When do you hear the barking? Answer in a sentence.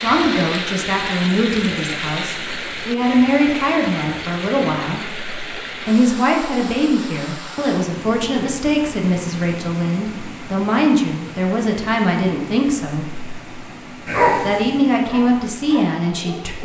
The barking can be heard from 14.1 to 16.6 s.